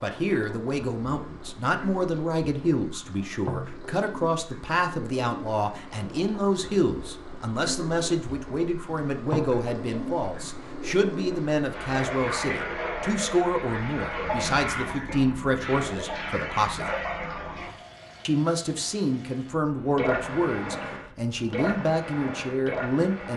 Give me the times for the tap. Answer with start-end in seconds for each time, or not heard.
0.0-23.3.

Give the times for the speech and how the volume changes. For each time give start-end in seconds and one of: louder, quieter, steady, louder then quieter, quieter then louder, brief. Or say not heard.
0.0-16.9 steady
18.2-23.3 steady.